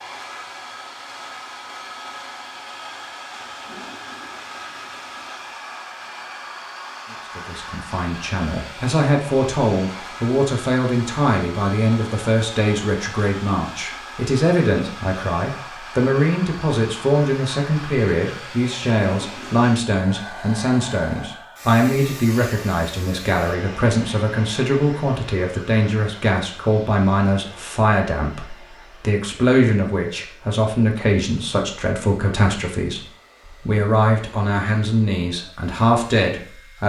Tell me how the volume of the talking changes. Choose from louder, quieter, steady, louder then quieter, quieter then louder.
steady.